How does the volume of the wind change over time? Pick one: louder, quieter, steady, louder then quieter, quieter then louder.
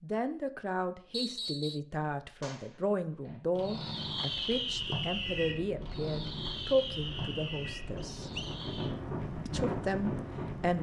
louder.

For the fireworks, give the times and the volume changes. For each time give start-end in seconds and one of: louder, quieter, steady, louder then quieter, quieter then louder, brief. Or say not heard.
2.4-8.9 louder then quieter.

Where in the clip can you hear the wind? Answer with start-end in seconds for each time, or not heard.
4.2-10.7.